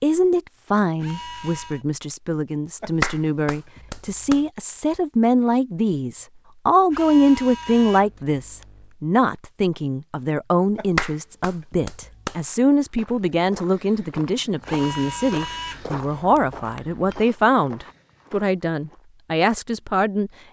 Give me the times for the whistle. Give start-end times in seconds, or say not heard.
not heard.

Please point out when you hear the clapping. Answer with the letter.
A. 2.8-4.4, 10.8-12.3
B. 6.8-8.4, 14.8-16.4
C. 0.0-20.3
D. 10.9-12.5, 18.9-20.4
A.